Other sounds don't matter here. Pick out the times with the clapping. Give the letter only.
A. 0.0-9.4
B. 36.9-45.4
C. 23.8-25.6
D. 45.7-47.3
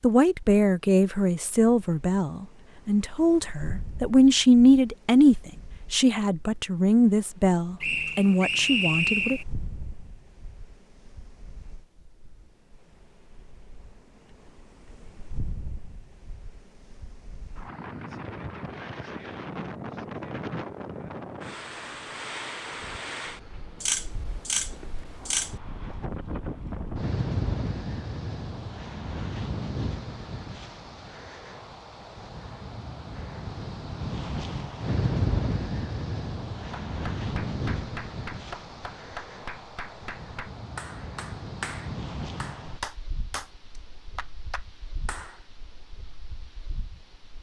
B.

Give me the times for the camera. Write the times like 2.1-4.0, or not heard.
23.8-25.6.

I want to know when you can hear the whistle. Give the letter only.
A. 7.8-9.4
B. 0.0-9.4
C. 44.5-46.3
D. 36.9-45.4
A.